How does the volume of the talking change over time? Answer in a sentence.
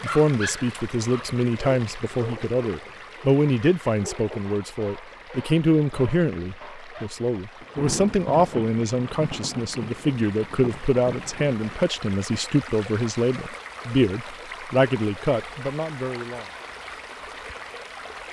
The loudness of the talking stays about the same.